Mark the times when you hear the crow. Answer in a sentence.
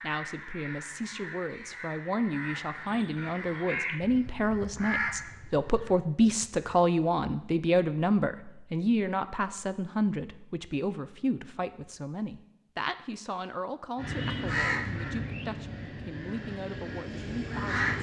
The crow can be heard from 0.0 to 6.5 s and from 13.9 to 17.9 s.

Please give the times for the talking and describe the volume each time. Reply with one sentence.
You can hear the talking from 0.0 to 17.9 s, getting louder then quieter.